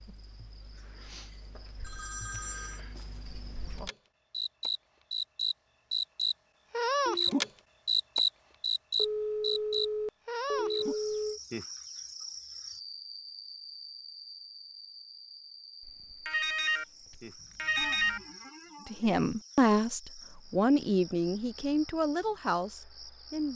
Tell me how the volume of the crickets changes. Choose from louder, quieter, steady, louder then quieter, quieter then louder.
louder then quieter.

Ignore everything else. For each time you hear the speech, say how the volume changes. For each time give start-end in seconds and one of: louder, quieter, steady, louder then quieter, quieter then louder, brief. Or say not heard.
18.9-23.5 quieter.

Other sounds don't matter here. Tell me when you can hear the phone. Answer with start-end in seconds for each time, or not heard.
1.8-2.8, 8.9-11.4, 16.2-16.9, 17.6-18.2.